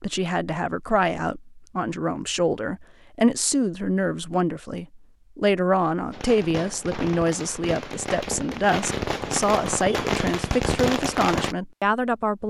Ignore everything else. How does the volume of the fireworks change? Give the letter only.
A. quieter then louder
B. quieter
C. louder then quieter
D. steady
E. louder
E.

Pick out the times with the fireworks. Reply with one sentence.
The fireworks can be heard from 6.1 to 11.6 s.